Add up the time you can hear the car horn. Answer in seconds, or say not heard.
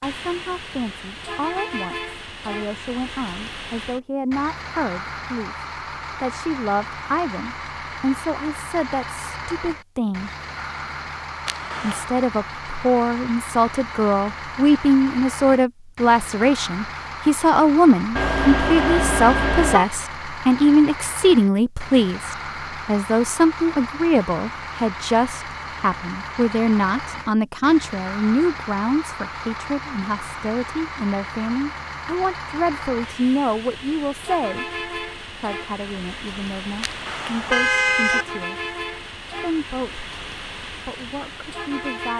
4 s.